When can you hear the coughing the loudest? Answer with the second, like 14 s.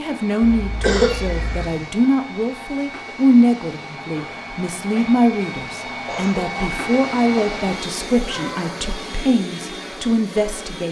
1 s.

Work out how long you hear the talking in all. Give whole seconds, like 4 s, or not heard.
11 s.